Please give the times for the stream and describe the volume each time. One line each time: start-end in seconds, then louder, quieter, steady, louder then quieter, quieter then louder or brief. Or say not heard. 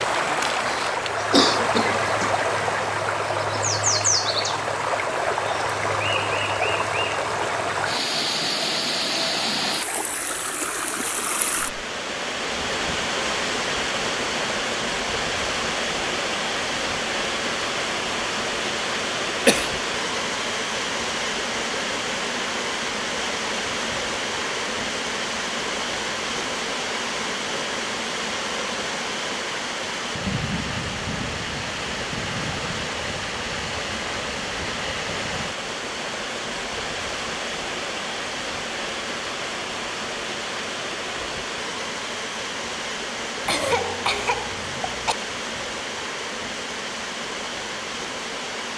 0.0-48.7 quieter.